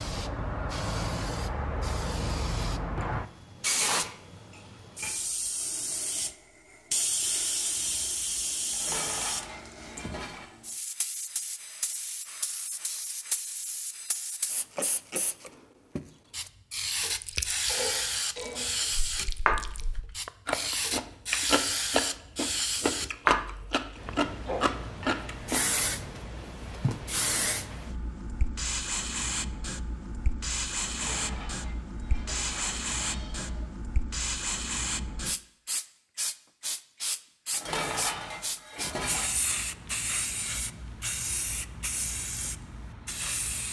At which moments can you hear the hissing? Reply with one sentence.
You can hear the hissing from 0.0 to 43.6 s.